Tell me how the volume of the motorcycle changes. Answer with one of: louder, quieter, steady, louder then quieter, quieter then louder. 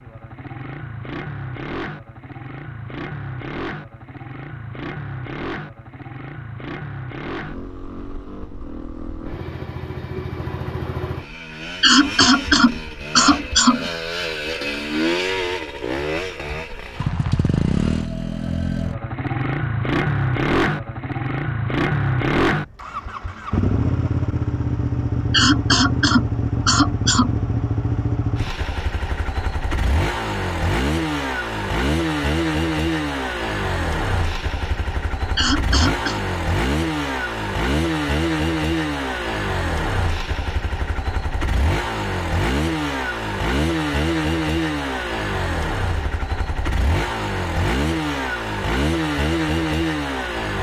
louder.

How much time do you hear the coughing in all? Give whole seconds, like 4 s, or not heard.
5 s.